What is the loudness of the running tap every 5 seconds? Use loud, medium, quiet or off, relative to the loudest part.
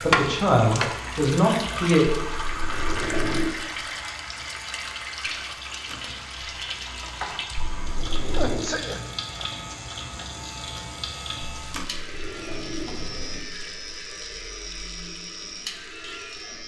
loud, medium, medium, quiet.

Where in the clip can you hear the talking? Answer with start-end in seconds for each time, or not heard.
0.0-2.0.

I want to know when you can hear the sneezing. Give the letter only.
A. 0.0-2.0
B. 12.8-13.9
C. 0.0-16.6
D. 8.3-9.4
D.